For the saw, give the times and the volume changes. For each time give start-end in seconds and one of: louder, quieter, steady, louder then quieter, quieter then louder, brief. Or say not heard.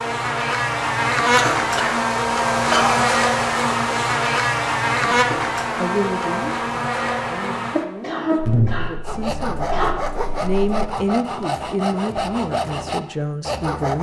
9.1-13.9 steady.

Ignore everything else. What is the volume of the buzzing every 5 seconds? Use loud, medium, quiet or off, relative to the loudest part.
loud, loud, off.